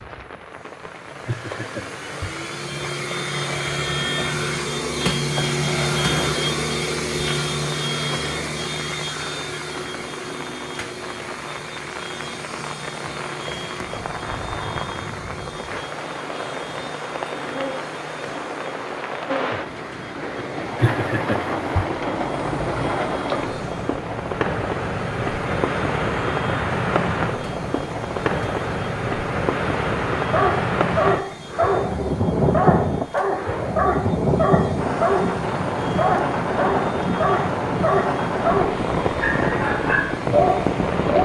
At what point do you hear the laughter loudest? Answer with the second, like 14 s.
21 s.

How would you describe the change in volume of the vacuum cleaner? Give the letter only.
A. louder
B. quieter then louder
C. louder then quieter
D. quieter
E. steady
D.